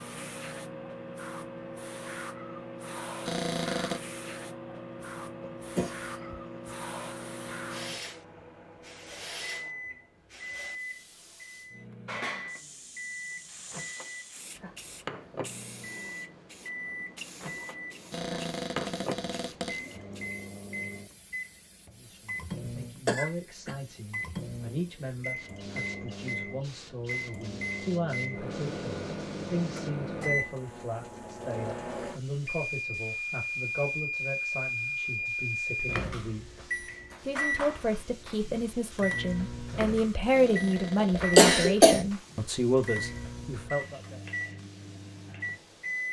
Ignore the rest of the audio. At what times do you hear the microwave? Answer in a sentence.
The microwave can be heard from 0.0 to 46.0 s.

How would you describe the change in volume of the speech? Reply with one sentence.
The loudness of the speech goes up.